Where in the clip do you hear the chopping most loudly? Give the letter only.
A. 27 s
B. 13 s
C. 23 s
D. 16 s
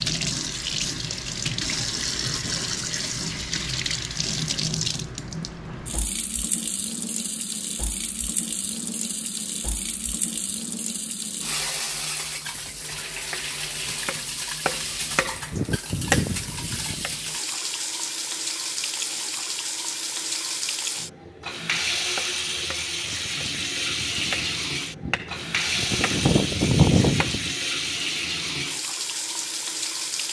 A.